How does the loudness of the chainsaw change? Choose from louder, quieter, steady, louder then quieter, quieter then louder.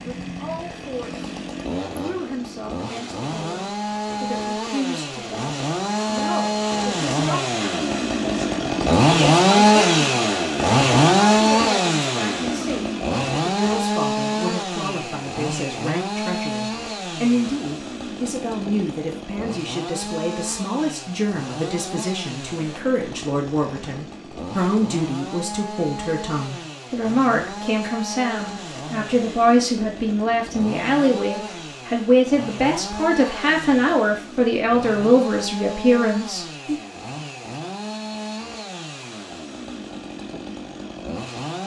louder then quieter.